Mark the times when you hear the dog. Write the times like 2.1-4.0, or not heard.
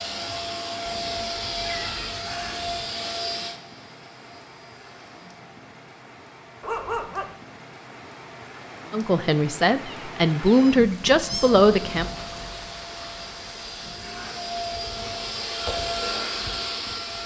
6.6-7.3.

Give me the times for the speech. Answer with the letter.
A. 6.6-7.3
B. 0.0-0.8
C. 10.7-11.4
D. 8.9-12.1
D.